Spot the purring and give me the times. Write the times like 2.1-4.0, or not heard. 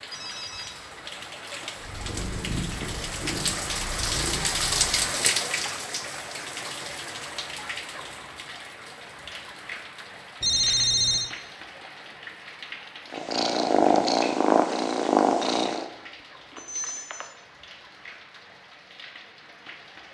1.8-5.1, 13.1-15.8.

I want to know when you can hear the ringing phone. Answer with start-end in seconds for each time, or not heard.
0.1-0.8, 10.4-11.3, 16.5-17.4.